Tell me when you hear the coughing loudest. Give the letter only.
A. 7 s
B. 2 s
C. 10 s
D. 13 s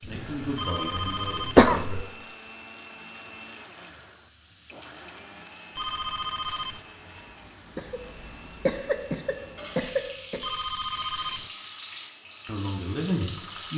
B.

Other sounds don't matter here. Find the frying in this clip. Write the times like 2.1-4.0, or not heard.
0.0-13.7.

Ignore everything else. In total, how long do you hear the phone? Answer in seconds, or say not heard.
3 s.